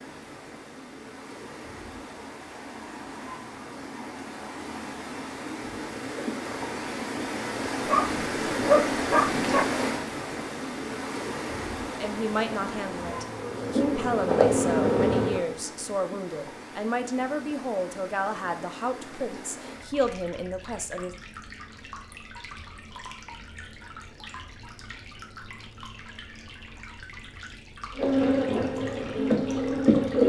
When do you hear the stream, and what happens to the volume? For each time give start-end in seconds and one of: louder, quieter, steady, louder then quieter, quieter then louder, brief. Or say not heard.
0.0-30.2 louder then quieter.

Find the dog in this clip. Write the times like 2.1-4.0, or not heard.
7.8-9.7.